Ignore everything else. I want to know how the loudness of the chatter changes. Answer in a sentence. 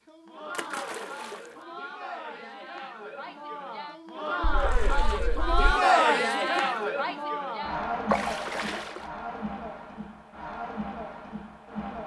The loudness of the chatter goes up, then down.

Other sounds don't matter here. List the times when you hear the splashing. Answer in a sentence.
You can hear the splashing from 0.5 to 1.4 s, from 4.4 to 5.8 s and from 8.1 to 9.1 s.